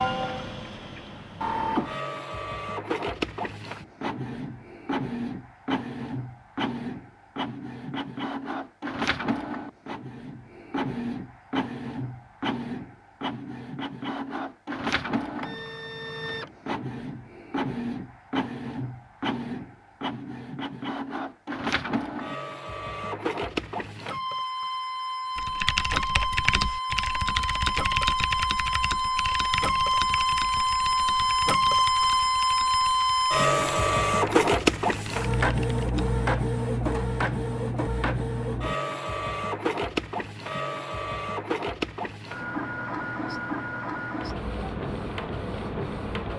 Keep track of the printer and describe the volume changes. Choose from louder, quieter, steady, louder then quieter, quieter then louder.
louder then quieter.